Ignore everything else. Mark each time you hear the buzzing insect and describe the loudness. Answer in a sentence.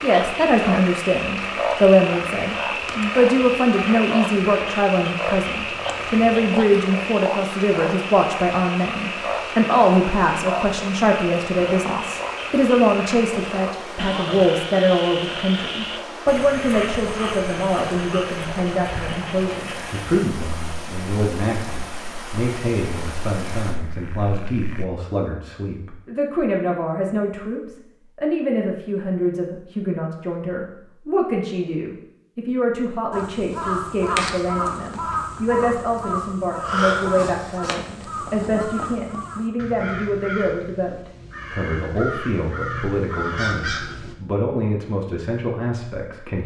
The buzzing insect can't be heard in this clip.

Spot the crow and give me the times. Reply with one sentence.
The crow can be heard from 33.1 to 44.1 s.